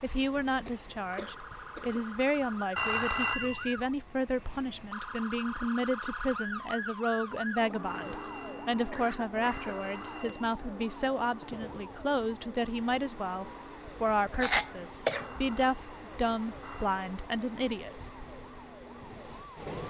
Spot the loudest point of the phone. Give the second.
3 s.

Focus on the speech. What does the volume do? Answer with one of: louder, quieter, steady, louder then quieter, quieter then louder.
steady.